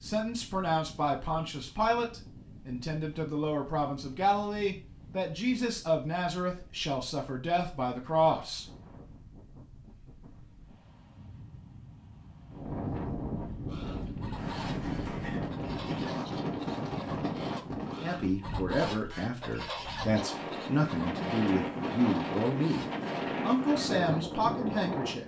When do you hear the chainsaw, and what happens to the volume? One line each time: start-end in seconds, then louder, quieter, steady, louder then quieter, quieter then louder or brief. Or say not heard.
not heard.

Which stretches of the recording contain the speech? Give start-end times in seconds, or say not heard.
0.0-8.7, 18.0-25.2.